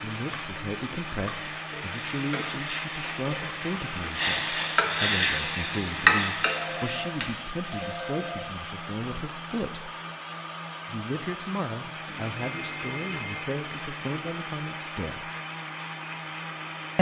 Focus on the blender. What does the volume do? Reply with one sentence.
The loudness of the blender stays about the same.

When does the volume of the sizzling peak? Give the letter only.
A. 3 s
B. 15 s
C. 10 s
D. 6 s
D.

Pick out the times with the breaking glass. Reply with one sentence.
The breaking glass can be heard from 0.3 to 1.4 s.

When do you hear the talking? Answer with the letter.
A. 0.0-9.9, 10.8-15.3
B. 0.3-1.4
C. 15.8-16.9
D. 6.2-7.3
A.